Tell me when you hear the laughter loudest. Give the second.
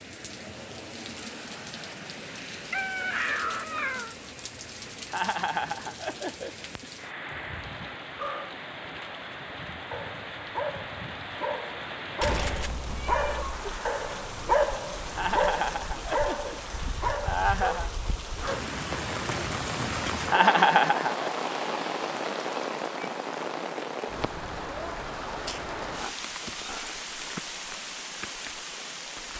21 s.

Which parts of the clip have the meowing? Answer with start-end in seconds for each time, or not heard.
2.7-4.2, 12.2-13.7, 26.0-27.0.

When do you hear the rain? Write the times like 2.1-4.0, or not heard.
0.0-29.3.